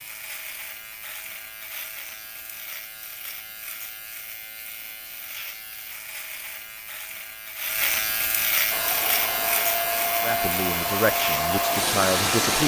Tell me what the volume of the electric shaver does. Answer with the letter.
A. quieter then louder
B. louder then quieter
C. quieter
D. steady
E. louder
E.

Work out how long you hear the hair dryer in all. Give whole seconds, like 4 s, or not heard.
4 s.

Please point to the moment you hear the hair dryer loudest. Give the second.
12 s.